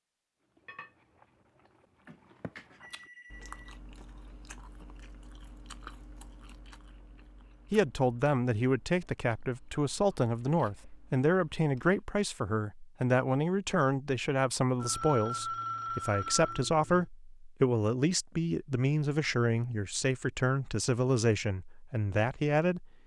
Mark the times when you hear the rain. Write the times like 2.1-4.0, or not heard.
not heard.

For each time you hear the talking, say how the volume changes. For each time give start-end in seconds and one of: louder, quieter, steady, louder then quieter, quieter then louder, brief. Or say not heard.
7.7-22.9 steady.